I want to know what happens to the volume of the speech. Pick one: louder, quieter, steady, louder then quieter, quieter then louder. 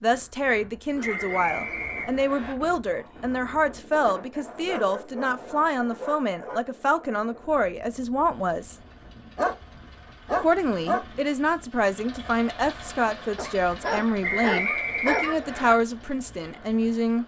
steady.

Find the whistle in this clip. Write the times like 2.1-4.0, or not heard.
1.0-2.5, 14.2-15.8.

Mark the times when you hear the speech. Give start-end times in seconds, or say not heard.
0.0-8.8, 10.4-17.2.